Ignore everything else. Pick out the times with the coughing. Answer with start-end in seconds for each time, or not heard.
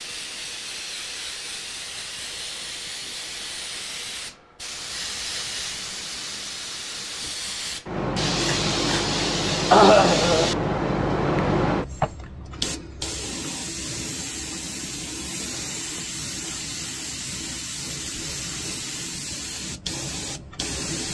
9.7-10.5.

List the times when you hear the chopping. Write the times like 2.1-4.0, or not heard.
not heard.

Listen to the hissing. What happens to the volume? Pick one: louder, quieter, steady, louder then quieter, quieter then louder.
louder then quieter.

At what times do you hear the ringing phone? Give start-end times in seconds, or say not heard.
not heard.